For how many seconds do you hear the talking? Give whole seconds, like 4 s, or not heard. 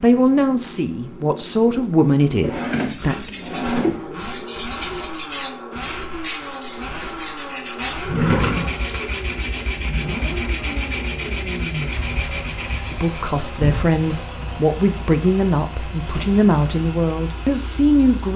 9 s.